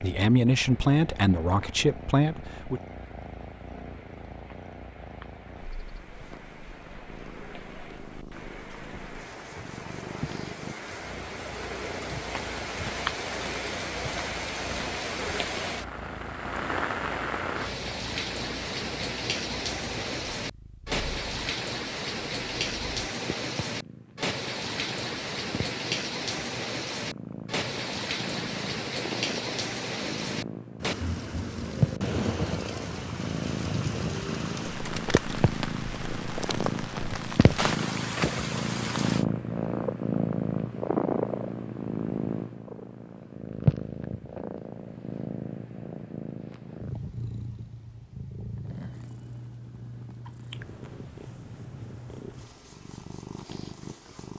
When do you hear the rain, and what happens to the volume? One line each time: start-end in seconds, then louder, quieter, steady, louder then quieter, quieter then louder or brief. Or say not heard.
0.0-39.2 louder.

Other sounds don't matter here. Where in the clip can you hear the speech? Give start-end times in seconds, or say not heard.
0.0-2.8.